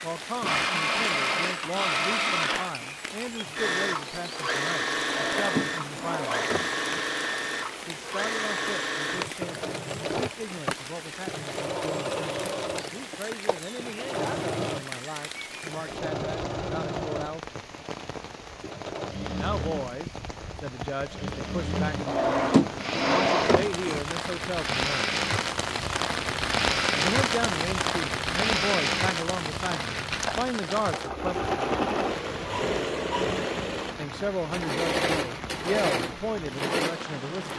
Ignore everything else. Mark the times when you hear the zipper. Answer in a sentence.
The zipper can't be heard in this clip.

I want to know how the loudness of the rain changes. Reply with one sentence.
The loudness of the rain goes up, then down.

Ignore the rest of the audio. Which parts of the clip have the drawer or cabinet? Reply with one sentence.
The drawer or cabinet can be heard from 5.0 to 7.0 s and from 22.1 to 24.0 s.